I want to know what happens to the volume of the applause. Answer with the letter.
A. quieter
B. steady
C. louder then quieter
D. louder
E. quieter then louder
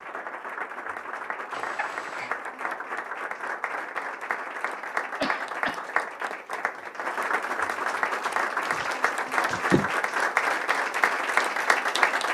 D.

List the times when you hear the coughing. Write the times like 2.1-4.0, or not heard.
1.5-2.4, 5.2-5.8, 8.7-9.9.